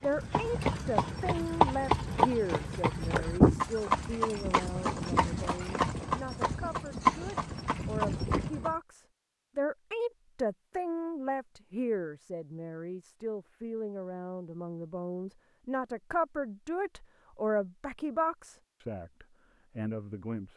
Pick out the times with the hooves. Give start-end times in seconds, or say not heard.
0.0-8.8.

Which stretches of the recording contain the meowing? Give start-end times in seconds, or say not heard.
not heard.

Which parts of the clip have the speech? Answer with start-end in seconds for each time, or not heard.
0.0-20.5.